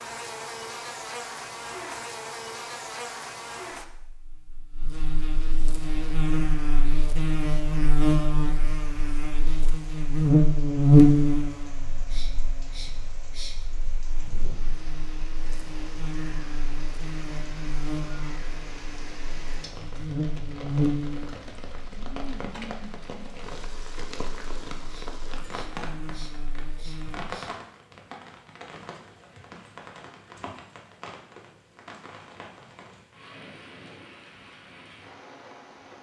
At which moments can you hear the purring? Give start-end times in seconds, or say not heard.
not heard.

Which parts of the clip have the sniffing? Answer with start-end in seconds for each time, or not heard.
12.1-13.6, 24.9-27.6.